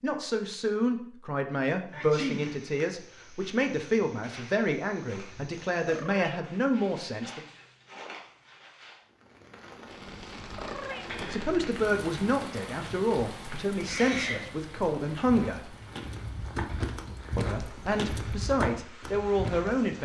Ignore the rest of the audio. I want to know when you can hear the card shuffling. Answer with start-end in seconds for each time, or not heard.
not heard.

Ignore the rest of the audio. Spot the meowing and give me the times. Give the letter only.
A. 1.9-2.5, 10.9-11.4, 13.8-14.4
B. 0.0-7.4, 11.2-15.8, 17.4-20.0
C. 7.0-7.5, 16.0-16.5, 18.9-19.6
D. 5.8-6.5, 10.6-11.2
D.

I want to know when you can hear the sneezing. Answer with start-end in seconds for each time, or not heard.
1.9-2.5, 10.9-11.4, 13.8-14.4.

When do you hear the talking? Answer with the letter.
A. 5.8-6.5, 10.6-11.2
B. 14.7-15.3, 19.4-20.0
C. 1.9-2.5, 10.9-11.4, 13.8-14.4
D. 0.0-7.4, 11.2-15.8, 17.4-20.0
D.